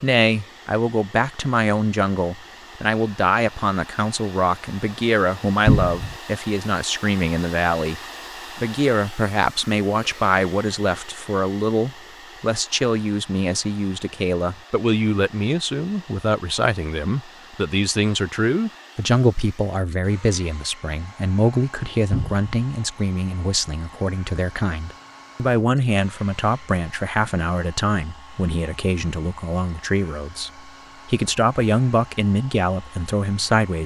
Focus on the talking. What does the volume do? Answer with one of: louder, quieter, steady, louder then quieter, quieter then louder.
steady.